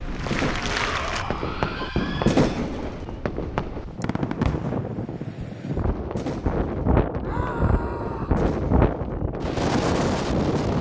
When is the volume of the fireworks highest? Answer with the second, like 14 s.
2 s.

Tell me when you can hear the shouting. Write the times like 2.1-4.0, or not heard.
0.7-2.6, 7.2-8.4.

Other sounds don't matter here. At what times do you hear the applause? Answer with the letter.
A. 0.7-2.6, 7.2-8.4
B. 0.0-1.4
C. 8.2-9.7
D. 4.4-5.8
B.